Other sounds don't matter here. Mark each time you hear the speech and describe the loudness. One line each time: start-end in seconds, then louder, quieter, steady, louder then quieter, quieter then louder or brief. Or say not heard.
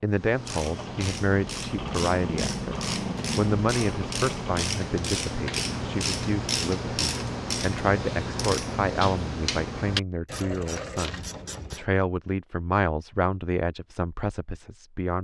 0.0-15.1 steady.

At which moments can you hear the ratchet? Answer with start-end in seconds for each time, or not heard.
0.1-11.9.